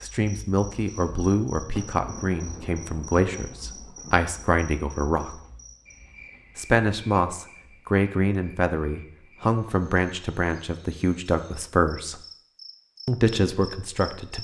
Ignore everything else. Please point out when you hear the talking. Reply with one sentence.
You can hear the talking from 0.0 to 5.4 s, from 6.5 to 12.2 s and from 13.1 to 14.4 s.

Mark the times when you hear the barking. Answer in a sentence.
The barking can't be heard in this clip.